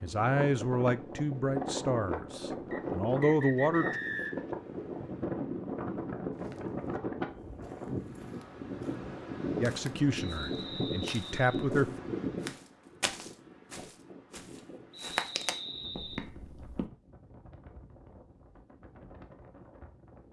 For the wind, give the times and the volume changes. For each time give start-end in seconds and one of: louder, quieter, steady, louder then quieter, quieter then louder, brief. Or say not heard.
0.0-20.2 quieter.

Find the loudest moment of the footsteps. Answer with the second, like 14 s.
15 s.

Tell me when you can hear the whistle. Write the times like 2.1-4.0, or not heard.
2.7-4.5, 10.2-11.7, 14.9-16.2.